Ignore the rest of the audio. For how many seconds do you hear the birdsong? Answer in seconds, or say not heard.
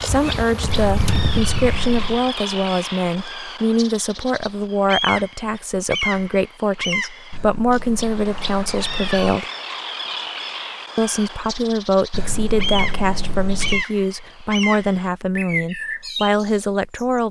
17 s.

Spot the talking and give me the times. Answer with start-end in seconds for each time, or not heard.
0.0-9.4, 10.9-17.2.